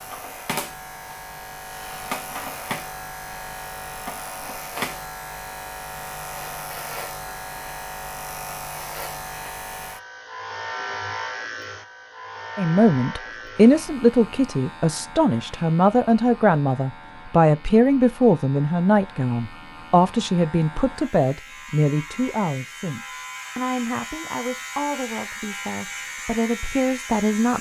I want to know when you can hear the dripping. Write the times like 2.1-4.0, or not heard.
not heard.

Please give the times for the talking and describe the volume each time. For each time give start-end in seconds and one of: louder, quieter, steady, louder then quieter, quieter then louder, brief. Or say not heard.
12.6-27.5 quieter.